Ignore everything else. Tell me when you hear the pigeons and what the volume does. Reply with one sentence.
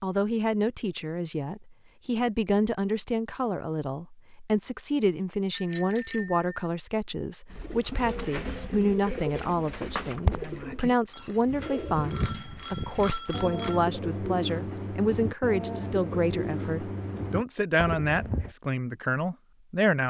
The pigeons can be heard from 7.5 to 18.6 s, at a steady volume.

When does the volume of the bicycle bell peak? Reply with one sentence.
The loudest moment of the bicycle bell is at 6 seconds.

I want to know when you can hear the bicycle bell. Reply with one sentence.
The bicycle bell can be heard from 5.5 to 6.7 s and from 11.1 to 13.8 s.